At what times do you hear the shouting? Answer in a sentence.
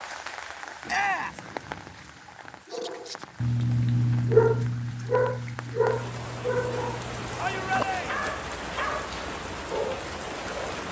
The shouting can be heard from 0.8 to 1.4 s and from 7.3 to 8.2 s.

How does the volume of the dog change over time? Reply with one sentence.
The volume of the dog goes down.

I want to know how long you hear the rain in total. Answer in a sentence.
The rain can be heard for 11 seconds in total.